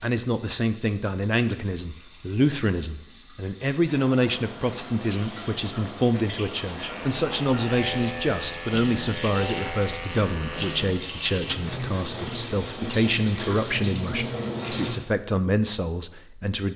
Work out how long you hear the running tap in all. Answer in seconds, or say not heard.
15 s.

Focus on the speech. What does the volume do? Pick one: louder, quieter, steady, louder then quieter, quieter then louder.
steady.